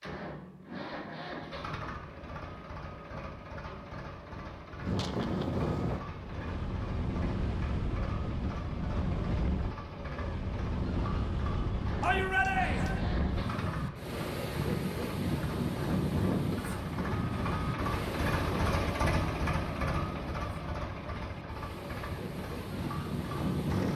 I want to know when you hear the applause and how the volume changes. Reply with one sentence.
You can't hear the applause here.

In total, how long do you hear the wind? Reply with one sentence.
The wind can be heard for 19 seconds in total.